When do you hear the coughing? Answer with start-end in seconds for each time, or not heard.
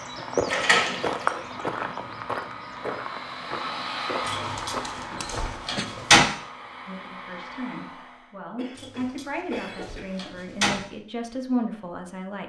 1.1-1.9, 4.5-5.8, 8.6-10.3.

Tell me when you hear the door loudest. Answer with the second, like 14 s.
6 s.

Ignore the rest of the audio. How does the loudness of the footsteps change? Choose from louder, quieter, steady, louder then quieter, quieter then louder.
quieter.